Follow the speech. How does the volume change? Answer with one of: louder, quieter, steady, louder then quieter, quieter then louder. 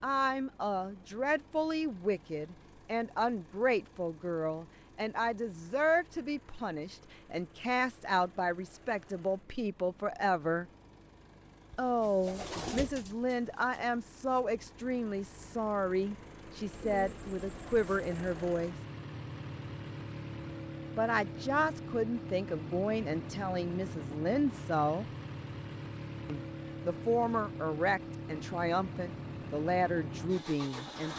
steady.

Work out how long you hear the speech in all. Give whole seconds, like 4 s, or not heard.
27 s.